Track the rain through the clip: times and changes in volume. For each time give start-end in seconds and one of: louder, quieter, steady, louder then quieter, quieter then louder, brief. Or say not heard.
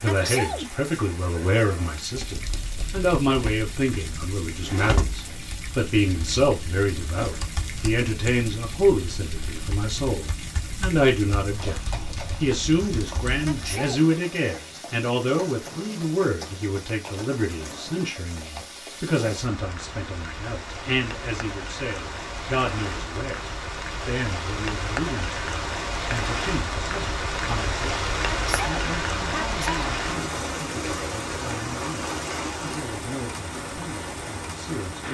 0.0-35.0 louder.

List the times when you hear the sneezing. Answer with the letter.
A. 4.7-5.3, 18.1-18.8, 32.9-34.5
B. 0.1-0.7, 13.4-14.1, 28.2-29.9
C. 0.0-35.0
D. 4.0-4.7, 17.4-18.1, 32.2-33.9
B.